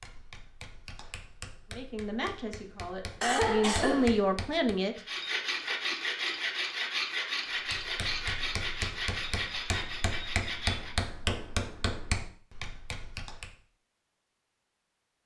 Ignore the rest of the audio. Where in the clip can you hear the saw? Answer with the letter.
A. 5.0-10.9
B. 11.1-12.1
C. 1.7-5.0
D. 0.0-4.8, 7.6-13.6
A.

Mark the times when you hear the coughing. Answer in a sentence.
You can hear the coughing from 3.2 to 4.2 s.